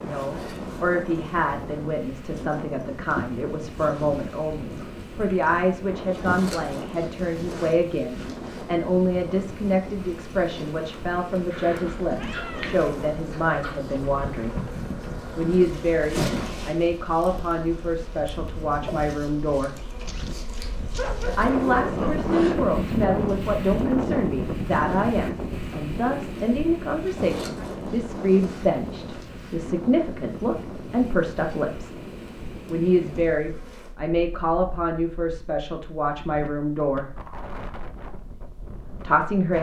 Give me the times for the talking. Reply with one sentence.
You can hear the talking from 0.0 to 14.6 s, from 15.3 to 19.8 s, from 21.4 to 31.9 s, from 32.6 to 37.0 s and from 39.0 to 39.5 s.